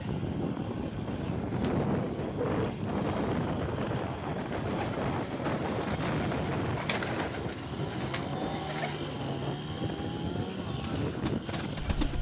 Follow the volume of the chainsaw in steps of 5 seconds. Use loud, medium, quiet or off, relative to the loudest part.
medium, loud, loud.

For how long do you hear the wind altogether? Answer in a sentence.
The wind can be heard for 12 seconds in total.